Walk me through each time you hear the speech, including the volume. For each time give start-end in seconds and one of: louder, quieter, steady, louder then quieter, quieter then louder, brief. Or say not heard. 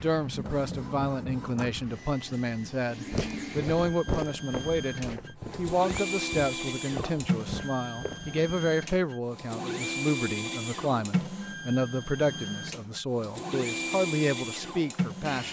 0.0-15.4 steady.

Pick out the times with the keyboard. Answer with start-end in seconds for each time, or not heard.
not heard.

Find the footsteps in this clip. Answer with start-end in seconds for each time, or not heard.
3.1-8.6.